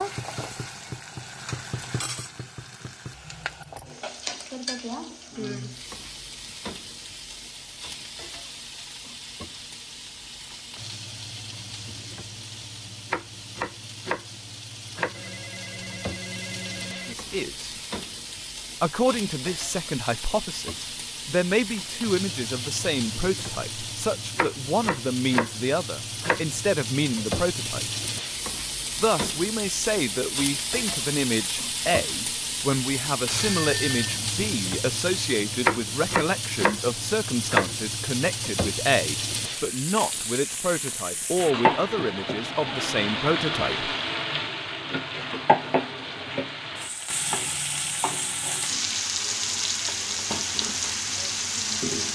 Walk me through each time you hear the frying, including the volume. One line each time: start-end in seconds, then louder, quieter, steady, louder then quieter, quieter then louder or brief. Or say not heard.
0.0-52.0 louder.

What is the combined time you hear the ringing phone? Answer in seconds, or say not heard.
3 s.